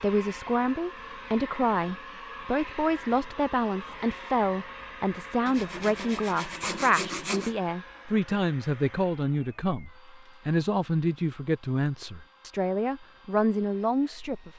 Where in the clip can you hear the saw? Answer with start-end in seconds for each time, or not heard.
5.5-7.5.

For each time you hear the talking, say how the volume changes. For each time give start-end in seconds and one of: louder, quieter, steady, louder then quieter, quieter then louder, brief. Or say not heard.
0.0-14.5 steady.